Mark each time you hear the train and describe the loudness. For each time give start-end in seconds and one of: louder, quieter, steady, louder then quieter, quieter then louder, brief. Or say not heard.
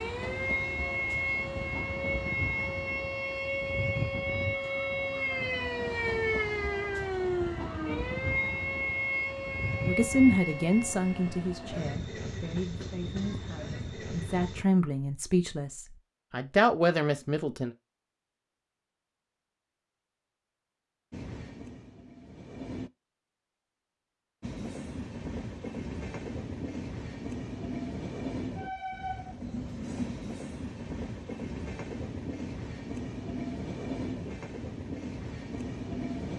0.0-14.7 steady
21.1-22.9 brief
24.4-36.3 steady.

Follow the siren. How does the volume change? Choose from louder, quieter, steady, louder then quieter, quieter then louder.
steady.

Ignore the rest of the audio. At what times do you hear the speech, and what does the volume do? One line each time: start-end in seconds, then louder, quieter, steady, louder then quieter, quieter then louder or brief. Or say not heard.
9.8-17.7 quieter then louder.